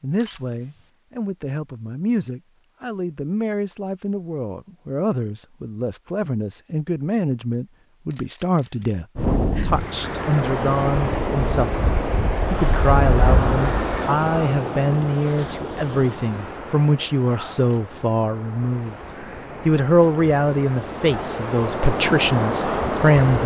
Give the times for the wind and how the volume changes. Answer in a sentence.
The wind can be heard from 9.2 to 23.4 s, getting quieter then louder.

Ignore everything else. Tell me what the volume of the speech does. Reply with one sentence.
The loudness of the speech goes up.